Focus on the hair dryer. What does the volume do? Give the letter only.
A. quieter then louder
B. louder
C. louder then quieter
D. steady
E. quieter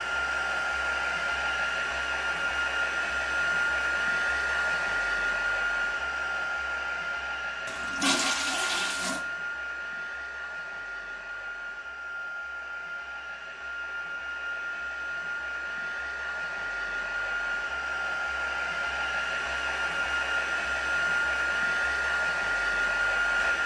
A.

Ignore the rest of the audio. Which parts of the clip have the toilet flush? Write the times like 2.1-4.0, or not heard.
7.7-9.2.